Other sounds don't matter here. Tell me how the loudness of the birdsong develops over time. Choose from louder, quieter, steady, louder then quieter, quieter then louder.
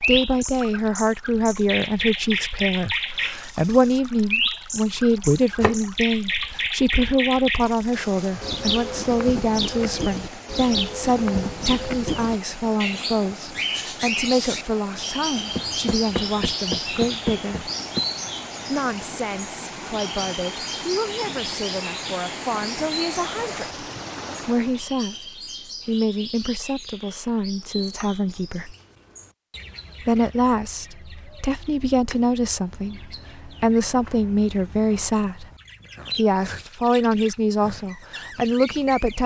quieter.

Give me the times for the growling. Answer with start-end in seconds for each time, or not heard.
not heard.